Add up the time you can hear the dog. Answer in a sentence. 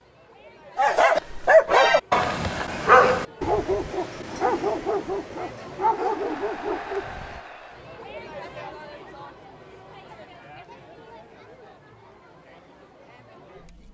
You can hear the dog for 7 seconds altogether.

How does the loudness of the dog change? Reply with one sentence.
The loudness of the dog goes down.